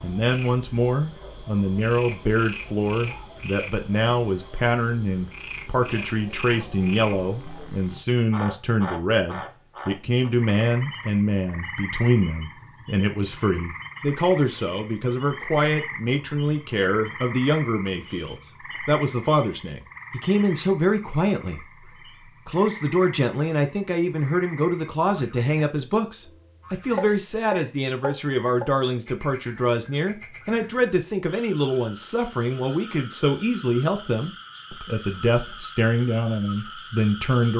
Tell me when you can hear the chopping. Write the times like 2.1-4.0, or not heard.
26.9-28.7.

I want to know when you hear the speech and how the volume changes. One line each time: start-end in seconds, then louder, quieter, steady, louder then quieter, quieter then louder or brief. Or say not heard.
0.0-37.5 steady.